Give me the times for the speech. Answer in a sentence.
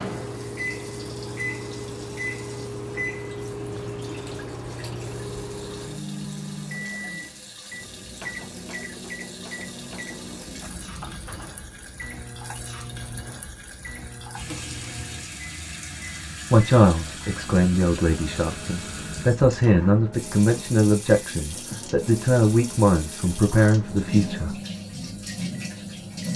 The speech can be heard from 16.5 to 24.6 s.